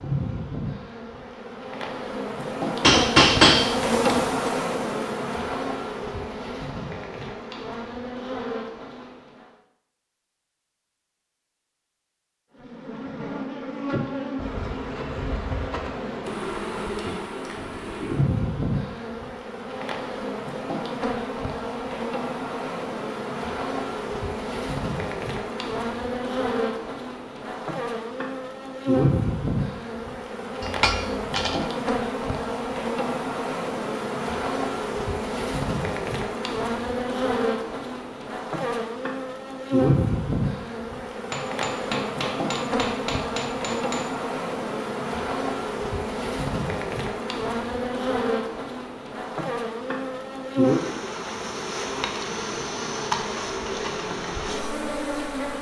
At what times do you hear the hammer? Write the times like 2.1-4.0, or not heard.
2.8-4.5, 30.6-31.6, 41.3-44.1.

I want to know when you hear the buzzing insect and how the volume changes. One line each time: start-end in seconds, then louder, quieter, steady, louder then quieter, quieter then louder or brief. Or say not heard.
0.0-9.5 louder then quieter
12.6-55.5 steady.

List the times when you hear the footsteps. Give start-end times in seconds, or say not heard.
not heard.